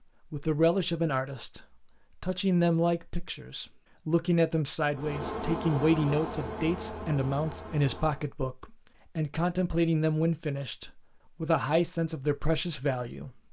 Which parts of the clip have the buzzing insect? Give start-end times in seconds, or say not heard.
4.9-8.3.